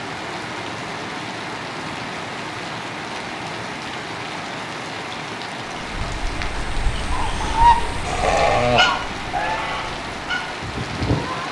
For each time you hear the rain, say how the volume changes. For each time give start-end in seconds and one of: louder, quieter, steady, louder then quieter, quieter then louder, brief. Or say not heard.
0.0-11.4 steady.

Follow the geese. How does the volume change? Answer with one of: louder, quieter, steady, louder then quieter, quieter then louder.
louder then quieter.